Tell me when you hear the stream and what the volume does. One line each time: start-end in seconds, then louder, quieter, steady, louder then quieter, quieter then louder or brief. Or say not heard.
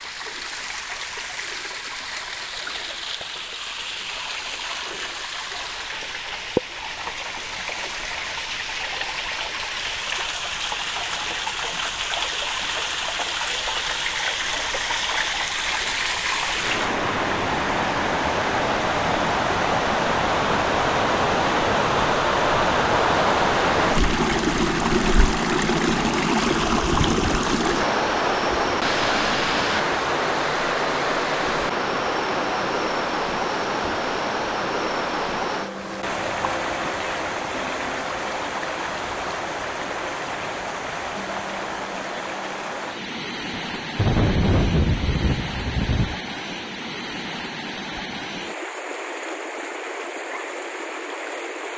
0.0-51.7 louder then quieter.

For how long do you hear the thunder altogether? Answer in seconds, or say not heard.
3 s.